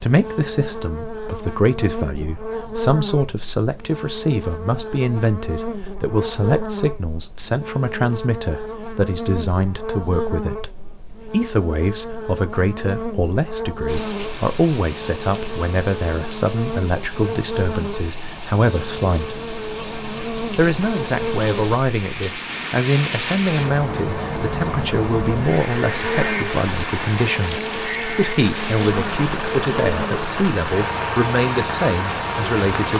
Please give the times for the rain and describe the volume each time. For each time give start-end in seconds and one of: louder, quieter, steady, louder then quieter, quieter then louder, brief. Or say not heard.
13.8-32.9 louder.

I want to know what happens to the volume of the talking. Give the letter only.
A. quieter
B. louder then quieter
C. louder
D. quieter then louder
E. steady
E.